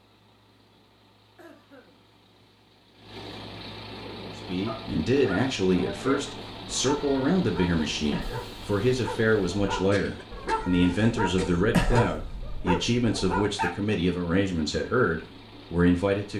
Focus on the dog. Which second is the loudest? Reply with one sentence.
The loudest moment of the dog is at 12 seconds.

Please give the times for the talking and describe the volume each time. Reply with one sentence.
The talking can be heard from 4.3 to 16.3 s, at a steady volume.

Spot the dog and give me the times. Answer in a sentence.
The dog can be heard from 4.0 to 13.8 s.